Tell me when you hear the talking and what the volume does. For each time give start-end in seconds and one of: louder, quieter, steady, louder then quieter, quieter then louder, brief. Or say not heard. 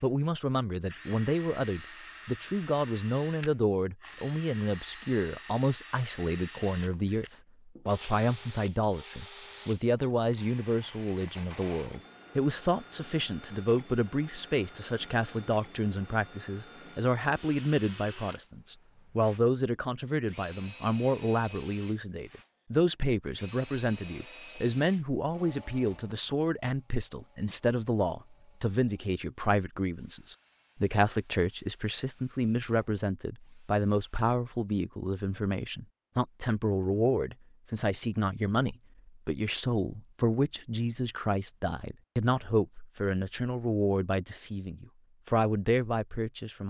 0.0-46.6 steady.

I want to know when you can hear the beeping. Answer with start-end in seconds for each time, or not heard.
not heard.